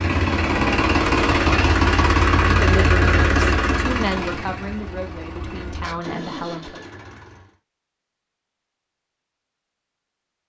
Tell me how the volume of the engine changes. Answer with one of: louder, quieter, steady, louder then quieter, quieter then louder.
quieter.